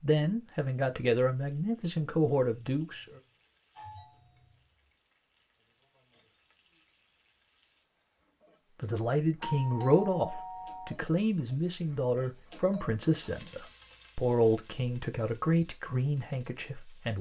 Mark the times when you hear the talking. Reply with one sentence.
You can hear the talking from 0.0 to 3.2 s and from 8.8 to 17.1 s.